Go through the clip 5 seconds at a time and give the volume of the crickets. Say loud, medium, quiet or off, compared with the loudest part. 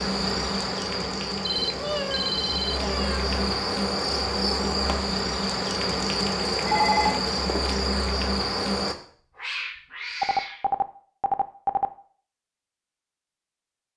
loud, loud, off.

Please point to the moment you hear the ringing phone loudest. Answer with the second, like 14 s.
7 s.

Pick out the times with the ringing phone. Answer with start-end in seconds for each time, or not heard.
1.4-2.8, 6.6-7.7, 10.2-11.8.